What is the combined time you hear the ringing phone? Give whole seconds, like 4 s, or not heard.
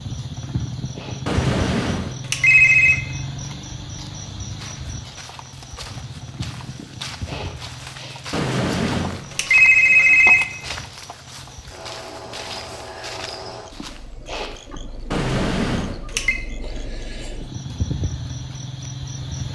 5 s.